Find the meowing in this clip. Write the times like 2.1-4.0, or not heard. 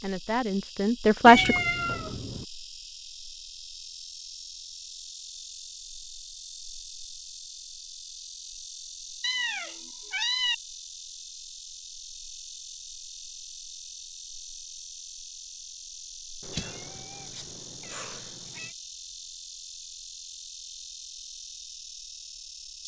1.2-2.5, 9.2-10.6, 16.4-18.7.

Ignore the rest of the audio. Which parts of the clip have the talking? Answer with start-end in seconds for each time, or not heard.
0.0-1.6.